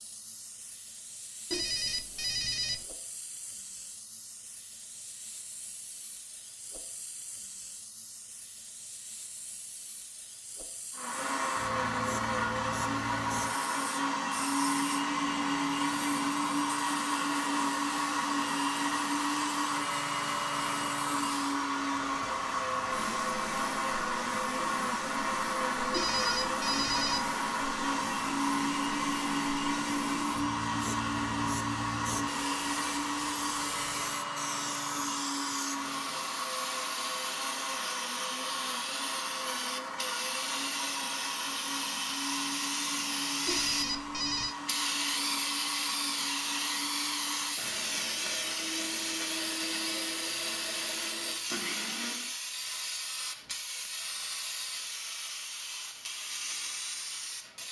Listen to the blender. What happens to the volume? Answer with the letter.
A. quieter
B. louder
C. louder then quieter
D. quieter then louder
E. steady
A.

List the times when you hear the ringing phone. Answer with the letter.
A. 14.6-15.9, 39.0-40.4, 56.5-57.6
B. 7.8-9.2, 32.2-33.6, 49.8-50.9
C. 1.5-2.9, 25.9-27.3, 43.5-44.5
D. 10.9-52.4
C.